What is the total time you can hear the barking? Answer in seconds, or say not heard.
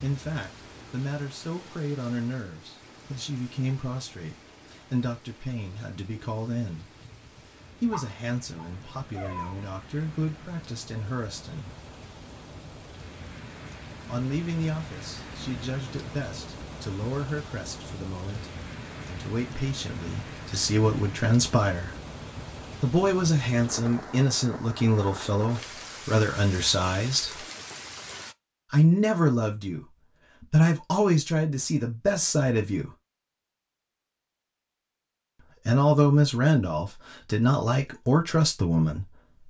2 s.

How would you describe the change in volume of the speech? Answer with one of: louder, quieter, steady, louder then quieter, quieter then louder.
louder.